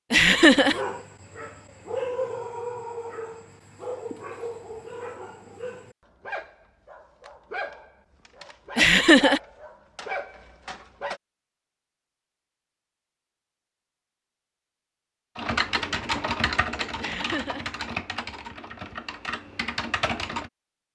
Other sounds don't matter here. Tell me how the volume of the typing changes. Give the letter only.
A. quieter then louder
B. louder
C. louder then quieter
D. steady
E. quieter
A.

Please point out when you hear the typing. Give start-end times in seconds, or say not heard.
15.3-20.5.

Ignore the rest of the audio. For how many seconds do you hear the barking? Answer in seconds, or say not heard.
11 s.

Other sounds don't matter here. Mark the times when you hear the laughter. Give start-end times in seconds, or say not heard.
0.1-0.8, 8.8-9.4, 17.0-17.6.